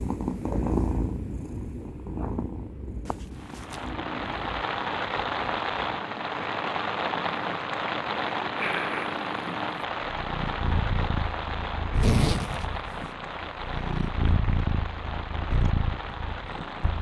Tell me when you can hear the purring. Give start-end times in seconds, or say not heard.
0.0-16.9.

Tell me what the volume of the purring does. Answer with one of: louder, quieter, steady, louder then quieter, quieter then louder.
quieter then louder.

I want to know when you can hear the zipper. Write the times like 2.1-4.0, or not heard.
3.0-3.9, 11.9-12.7.